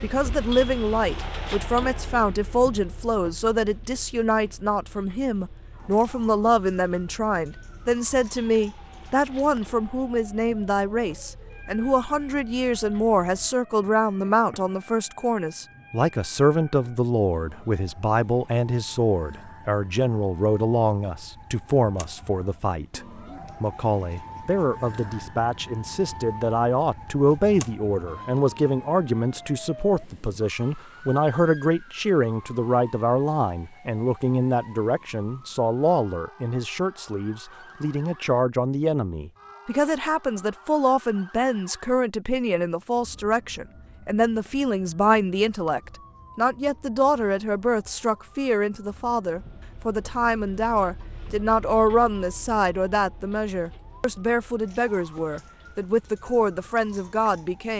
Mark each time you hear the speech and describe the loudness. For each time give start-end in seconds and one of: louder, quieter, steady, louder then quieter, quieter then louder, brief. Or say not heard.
0.0-57.7 steady.